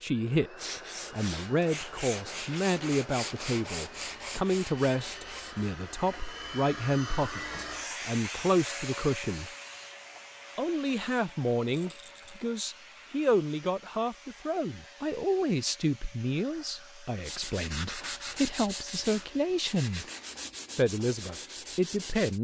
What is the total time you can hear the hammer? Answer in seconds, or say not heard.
not heard.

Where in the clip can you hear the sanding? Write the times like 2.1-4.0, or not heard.
0.6-5.8, 17.2-22.3.